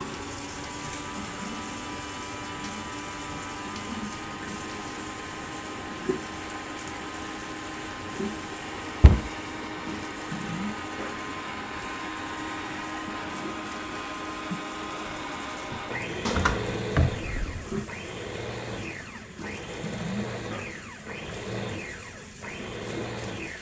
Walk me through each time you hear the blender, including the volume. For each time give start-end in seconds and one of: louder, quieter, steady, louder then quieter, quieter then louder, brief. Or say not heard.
0.0-23.5 steady.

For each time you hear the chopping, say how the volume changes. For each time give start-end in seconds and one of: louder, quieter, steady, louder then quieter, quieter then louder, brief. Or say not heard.
not heard.